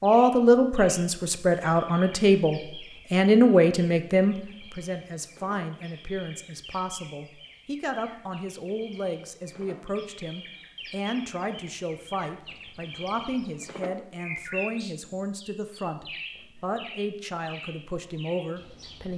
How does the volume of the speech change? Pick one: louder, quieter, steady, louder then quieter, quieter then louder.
quieter.